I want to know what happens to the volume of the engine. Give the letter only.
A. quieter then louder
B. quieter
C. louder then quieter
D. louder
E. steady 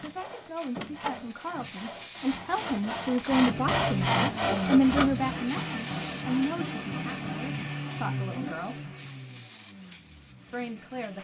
B.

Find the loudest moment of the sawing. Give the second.
4 s.